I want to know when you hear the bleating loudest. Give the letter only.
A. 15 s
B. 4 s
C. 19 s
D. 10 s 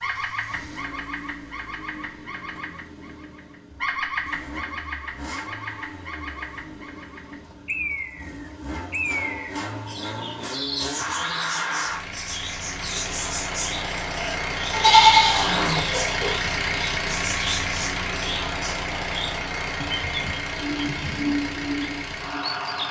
A.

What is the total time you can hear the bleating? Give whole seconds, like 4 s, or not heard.
2 s.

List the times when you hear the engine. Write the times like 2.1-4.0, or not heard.
0.0-22.8.